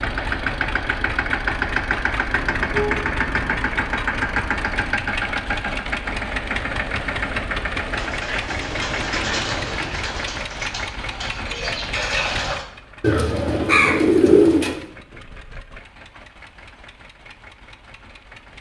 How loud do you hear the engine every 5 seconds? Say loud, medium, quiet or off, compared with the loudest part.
loud, loud, medium, quiet.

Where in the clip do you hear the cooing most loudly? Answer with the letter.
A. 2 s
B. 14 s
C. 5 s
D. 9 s
B.